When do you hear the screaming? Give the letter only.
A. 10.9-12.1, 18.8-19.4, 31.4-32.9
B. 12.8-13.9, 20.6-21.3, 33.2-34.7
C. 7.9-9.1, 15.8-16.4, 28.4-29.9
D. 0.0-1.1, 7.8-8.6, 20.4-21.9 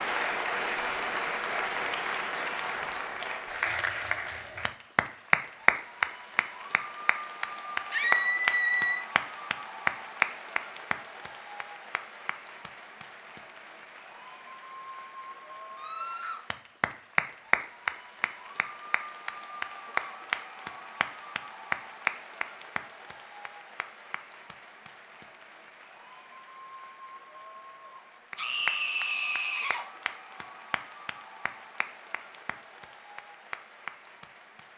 C.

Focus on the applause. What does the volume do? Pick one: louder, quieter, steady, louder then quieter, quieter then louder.
quieter.